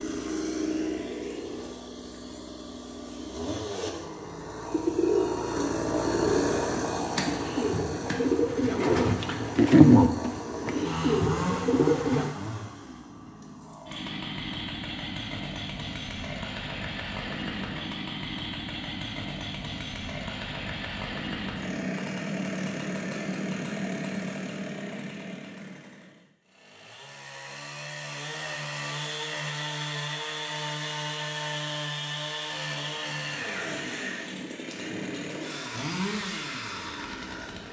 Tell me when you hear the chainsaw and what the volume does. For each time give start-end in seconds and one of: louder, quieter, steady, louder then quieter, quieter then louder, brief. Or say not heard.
0.0-37.6 steady.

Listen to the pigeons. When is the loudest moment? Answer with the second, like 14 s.
10 s.